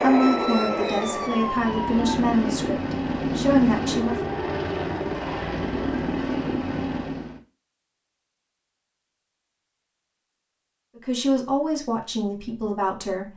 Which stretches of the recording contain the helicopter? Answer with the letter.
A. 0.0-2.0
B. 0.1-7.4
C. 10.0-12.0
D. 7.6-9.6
B.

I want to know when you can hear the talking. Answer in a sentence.
You can hear the talking from 0.0 to 4.2 s and from 10.9 to 13.3 s.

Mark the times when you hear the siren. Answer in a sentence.
You can hear the siren from 0.0 to 2.0 s.